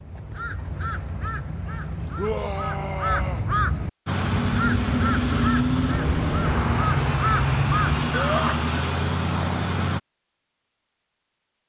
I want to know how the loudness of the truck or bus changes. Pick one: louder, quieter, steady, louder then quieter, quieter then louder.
steady.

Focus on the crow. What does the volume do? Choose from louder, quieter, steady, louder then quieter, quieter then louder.
louder.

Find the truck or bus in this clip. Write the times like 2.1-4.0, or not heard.
4.0-10.0.